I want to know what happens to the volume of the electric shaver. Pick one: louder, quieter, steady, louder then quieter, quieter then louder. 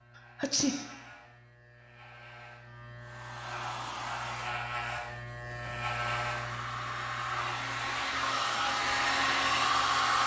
louder then quieter.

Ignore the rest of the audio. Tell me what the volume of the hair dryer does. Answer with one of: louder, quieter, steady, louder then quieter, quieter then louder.
quieter then louder.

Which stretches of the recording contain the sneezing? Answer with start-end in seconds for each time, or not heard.
0.1-0.9.